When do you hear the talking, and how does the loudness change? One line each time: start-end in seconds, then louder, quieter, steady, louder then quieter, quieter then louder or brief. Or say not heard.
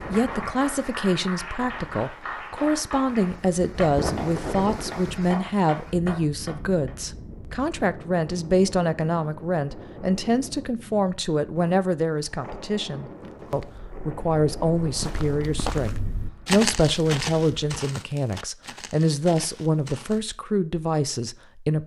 0.0-21.8 steady.